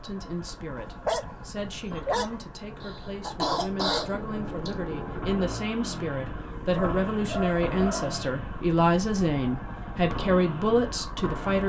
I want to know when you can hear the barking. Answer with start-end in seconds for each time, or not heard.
0.8-2.4, 6.5-8.3.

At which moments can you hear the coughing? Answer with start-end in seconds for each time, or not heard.
2.8-4.7.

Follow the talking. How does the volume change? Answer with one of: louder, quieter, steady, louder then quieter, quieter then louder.
louder.